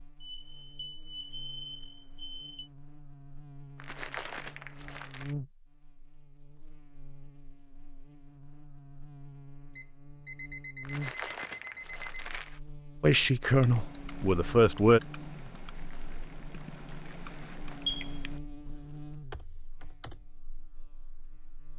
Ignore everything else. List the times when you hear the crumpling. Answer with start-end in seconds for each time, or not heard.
3.8-5.3, 10.8-12.6, 15.6-18.0.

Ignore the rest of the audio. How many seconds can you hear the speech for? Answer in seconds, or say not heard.
2 s.